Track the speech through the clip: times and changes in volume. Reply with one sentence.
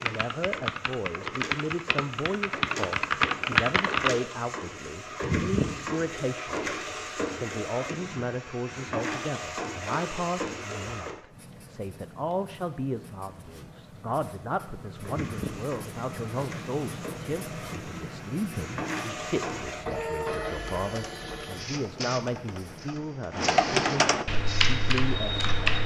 You can hear the speech from 0.0 to 25.8 s, at a steady volume.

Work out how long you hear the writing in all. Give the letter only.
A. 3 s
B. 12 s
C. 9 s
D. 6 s
B.